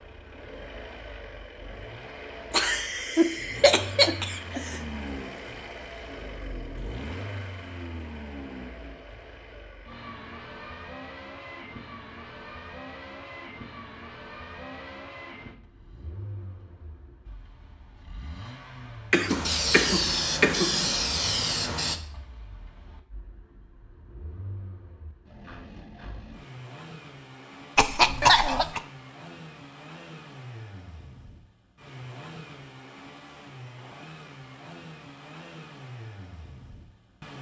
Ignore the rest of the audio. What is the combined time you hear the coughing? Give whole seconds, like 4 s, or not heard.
5 s.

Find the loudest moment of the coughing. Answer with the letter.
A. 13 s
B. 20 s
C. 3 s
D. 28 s
D.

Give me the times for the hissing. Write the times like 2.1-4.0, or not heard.
19.2-22.0.